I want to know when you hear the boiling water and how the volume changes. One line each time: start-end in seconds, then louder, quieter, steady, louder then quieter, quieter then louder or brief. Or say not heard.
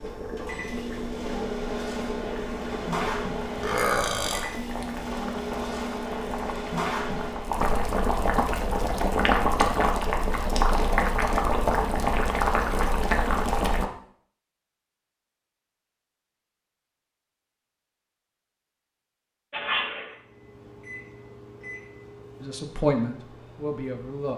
0.0-13.8 louder.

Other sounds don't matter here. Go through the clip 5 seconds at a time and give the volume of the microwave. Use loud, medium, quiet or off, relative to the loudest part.
loud, loud, off, off, quiet.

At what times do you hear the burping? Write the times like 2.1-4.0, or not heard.
3.5-4.5, 19.5-20.1.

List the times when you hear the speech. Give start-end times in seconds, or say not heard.
22.4-24.3.